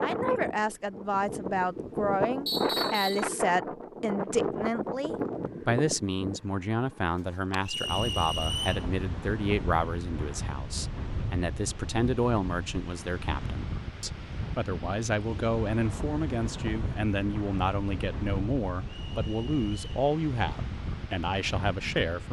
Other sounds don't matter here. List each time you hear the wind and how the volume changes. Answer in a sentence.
You can hear the wind from 0.0 to 22.2 s, getting quieter.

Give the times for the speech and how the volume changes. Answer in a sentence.
You can hear the speech from 0.0 to 22.2 s, at a steady volume.